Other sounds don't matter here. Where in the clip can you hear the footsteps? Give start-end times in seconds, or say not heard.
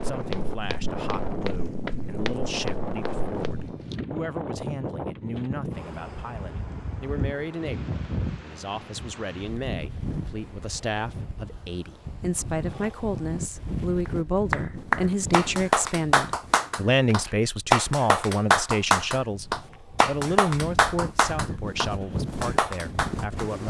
0.1-3.7.